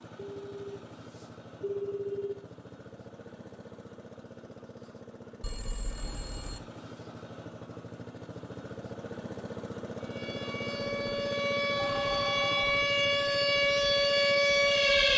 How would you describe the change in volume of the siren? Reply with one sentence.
The loudness of the siren goes up.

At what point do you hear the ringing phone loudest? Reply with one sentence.
The volume of the ringing phone peaks at 2 seconds.